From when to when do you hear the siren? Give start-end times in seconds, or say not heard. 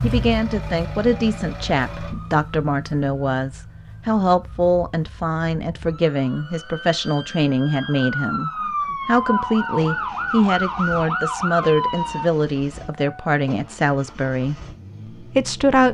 0.0-12.3.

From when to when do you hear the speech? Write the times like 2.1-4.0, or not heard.
0.0-14.6, 15.2-15.8.